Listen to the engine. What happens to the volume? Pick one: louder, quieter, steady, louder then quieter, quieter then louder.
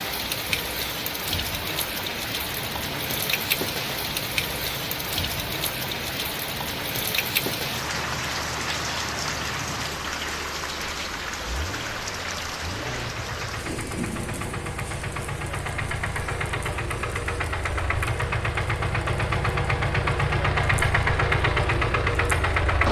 louder.